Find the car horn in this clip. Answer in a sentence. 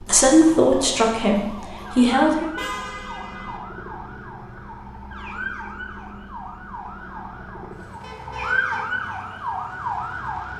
You can hear the car horn from 2.5 to 3.6 s and from 8.0 to 8.8 s.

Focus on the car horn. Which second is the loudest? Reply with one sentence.
The loudest moment of the car horn is at 3 seconds.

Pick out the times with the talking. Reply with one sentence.
The talking can be heard from 0.0 to 2.5 s.